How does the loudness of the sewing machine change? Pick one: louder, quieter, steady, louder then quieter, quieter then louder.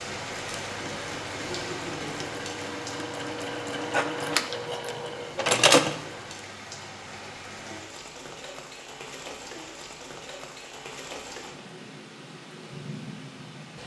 louder.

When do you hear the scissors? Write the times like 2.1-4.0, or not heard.
3.9-5.0.